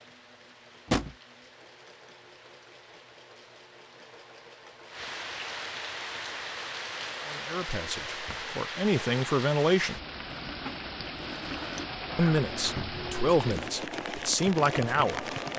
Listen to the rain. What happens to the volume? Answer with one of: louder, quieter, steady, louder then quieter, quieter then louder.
louder.